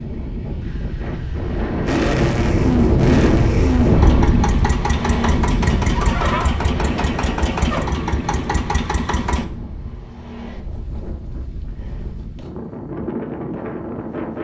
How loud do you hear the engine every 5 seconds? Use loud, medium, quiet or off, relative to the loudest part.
loud, loud, off.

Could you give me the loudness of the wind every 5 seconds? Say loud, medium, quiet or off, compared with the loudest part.
loud, medium, medium.